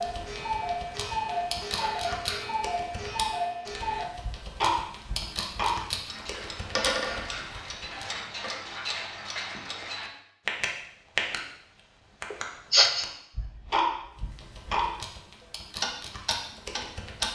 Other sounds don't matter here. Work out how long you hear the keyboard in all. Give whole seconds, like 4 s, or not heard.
11 s.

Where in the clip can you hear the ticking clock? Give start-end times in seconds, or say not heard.
0.0-11.4, 12.2-14.9, 15.8-17.2.